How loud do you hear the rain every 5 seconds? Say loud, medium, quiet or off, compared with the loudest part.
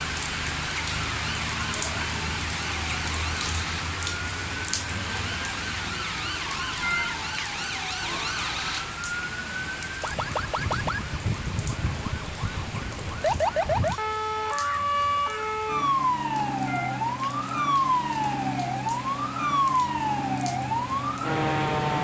loud, loud, medium, medium, medium.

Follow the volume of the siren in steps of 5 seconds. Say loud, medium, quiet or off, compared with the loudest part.
medium, medium, loud, loud, loud.